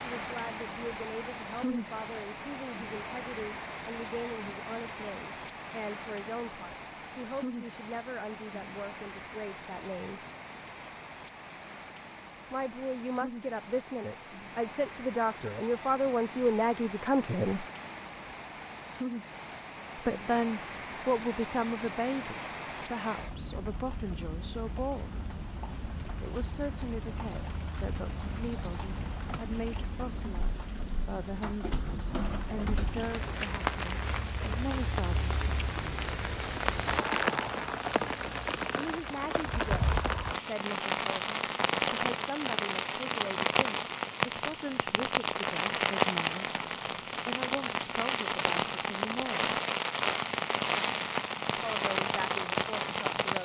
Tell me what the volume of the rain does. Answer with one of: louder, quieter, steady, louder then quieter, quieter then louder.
louder.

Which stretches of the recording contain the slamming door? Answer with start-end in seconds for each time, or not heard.
not heard.